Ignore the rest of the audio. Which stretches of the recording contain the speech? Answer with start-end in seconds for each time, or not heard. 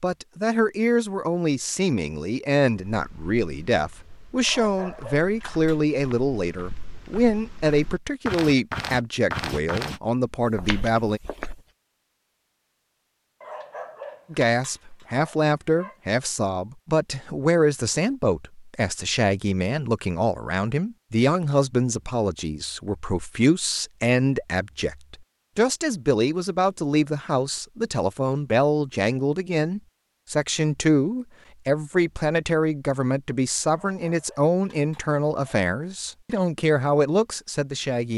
0.0-11.2, 14.3-38.1.